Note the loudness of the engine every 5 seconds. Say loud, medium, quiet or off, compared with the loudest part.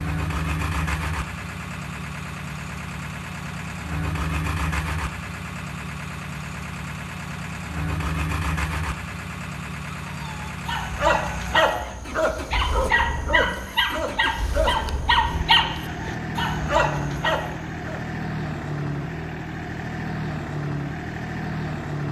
loud, loud, medium, loud, loud.